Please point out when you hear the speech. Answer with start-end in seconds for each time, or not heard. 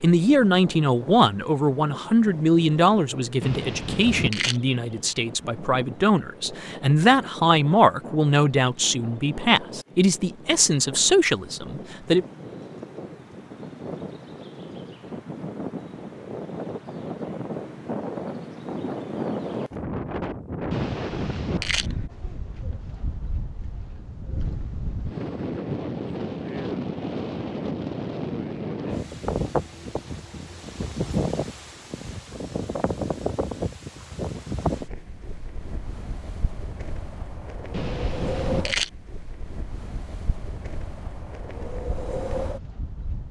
0.0-12.2.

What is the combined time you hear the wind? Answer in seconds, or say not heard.
43 s.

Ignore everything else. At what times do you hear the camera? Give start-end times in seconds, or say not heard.
3.4-4.6, 20.7-21.9, 37.7-38.9.